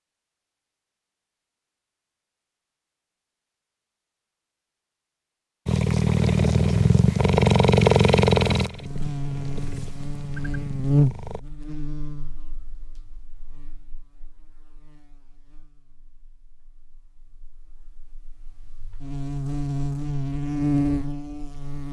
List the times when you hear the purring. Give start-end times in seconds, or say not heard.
5.7-11.4.